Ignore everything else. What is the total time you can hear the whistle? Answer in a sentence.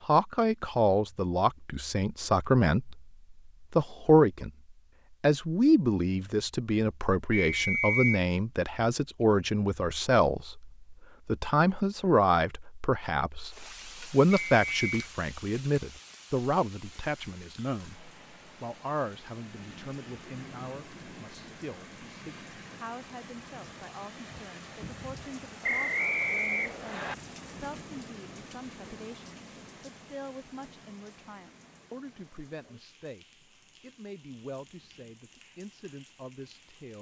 You can hear the whistle for 3 seconds altogether.